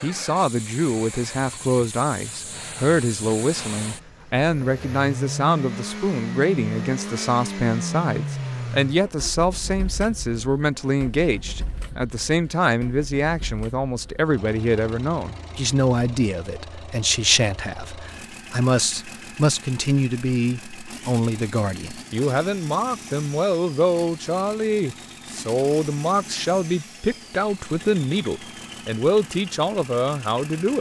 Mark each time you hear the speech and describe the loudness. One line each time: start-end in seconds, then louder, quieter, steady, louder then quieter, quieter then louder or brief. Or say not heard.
0.0-30.7 steady.